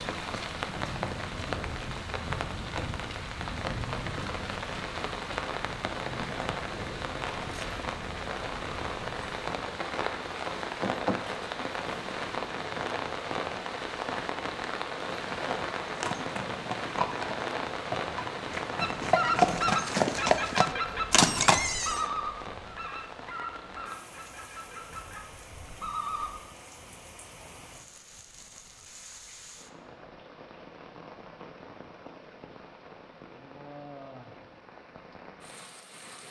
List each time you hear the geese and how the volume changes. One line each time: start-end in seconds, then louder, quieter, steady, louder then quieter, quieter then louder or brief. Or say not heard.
18.8-26.4 quieter.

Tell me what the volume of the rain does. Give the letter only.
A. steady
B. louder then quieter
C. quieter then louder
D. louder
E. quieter
E.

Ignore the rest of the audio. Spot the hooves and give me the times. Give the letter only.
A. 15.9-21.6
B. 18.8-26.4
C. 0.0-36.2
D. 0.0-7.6
A.